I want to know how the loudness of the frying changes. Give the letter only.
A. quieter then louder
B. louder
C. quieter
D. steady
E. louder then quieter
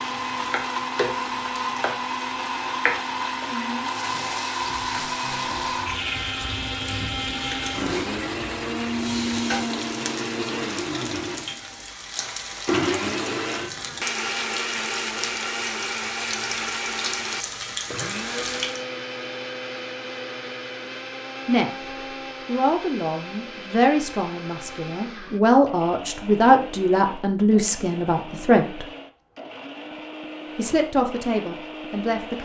D.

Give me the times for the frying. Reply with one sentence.
The frying can be heard from 0.0 to 18.8 s.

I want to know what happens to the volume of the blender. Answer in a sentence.
The loudness of the blender goes down.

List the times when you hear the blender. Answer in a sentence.
The blender can be heard from 0.0 to 32.3 s.